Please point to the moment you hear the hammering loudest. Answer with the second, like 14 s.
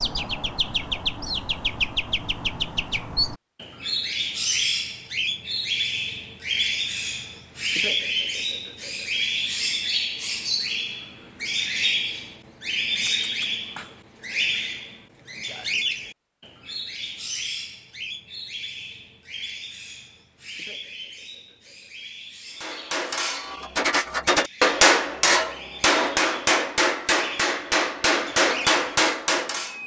25 s.